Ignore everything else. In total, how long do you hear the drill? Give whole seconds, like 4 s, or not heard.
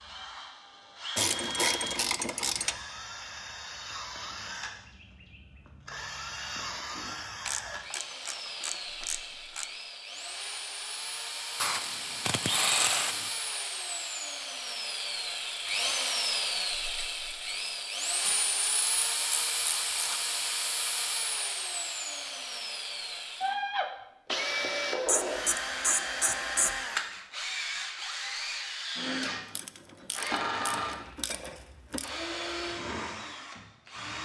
34 s.